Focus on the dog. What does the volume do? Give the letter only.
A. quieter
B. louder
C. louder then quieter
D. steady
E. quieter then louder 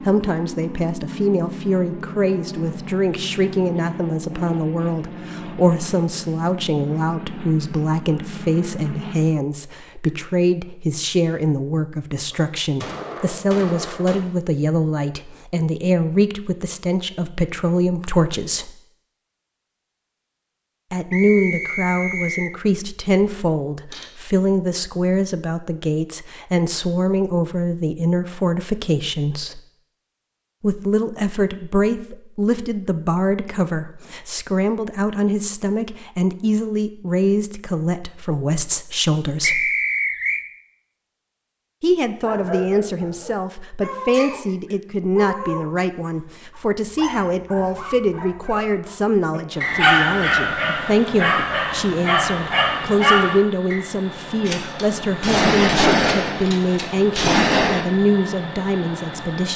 B.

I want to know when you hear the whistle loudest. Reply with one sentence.
The loudest moment of the whistle is at 40 seconds.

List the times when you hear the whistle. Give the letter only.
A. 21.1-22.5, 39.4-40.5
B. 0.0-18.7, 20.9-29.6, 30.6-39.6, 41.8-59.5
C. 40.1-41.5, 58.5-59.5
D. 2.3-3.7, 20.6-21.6
A.